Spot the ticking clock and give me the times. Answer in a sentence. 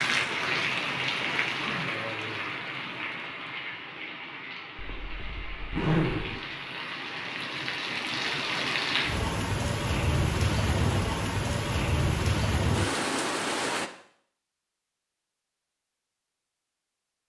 You can't hear the ticking clock here.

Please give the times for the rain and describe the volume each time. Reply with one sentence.
The rain can be heard from 0.0 to 13.9 s, getting quieter then louder.